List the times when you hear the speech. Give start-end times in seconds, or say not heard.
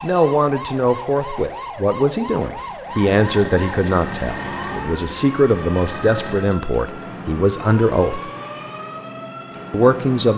0.0-8.3, 9.7-10.3.